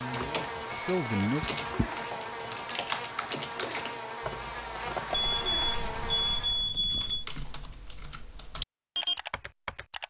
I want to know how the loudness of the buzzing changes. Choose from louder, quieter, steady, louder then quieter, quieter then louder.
steady.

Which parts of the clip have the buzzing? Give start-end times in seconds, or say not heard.
0.0-6.7.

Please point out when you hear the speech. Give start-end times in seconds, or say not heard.
0.1-1.6.